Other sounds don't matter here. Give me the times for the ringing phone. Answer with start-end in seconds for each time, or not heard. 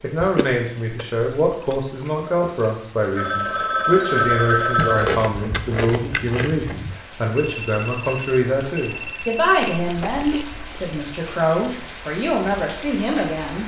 3.1-5.2, 7.3-10.1.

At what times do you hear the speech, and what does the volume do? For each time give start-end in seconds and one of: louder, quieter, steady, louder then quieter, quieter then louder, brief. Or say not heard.
0.0-13.6 steady.